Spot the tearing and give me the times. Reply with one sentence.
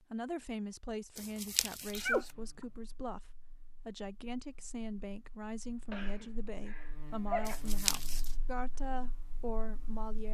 You can hear the tearing from 1.1 to 2.3 s and from 7.5 to 8.3 s.